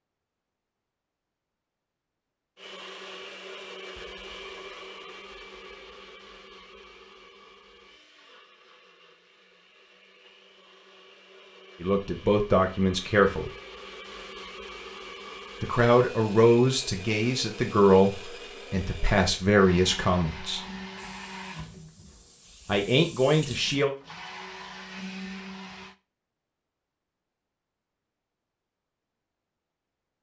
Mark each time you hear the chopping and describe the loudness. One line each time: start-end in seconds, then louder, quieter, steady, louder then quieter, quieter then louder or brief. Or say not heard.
not heard.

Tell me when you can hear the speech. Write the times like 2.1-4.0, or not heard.
11.8-13.5, 15.6-20.6, 22.6-23.9.